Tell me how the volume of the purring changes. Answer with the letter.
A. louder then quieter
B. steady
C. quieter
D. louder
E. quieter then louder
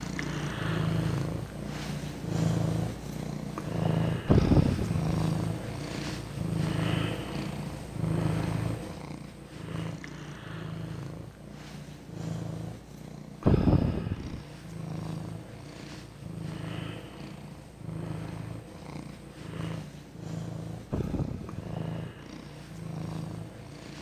C.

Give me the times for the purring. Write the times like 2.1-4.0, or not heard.
0.0-23.9.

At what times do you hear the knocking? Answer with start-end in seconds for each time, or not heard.
not heard.